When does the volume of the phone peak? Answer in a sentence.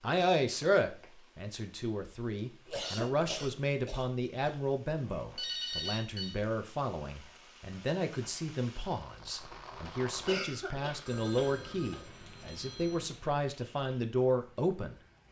The volume of the phone peaks at 6 seconds.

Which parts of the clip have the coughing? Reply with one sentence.
The coughing can be heard from 2.6 to 4.7 s and from 10.2 to 12.0 s.